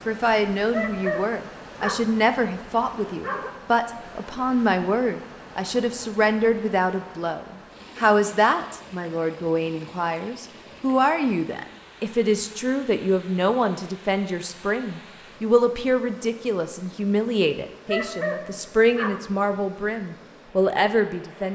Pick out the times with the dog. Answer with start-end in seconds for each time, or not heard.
0.7-3.5, 17.9-19.9.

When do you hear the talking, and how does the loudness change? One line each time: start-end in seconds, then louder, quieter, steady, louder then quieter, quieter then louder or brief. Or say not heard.
0.1-21.5 steady.